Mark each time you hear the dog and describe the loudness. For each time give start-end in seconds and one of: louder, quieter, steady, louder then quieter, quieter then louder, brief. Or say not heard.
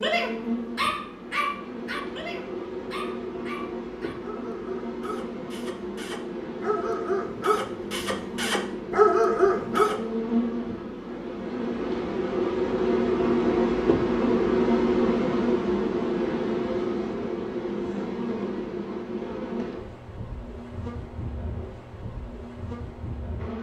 0.0-9.9 quieter then louder.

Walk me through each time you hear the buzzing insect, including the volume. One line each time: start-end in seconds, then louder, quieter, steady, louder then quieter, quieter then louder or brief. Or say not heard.
0.0-23.5 louder then quieter.